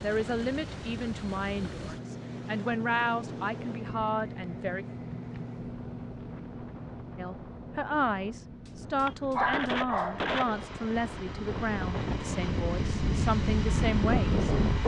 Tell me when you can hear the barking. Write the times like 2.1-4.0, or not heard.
8.7-10.2.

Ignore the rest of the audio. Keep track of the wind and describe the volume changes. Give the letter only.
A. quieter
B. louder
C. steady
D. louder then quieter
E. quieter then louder
B.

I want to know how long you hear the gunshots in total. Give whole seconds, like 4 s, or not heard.
2 s.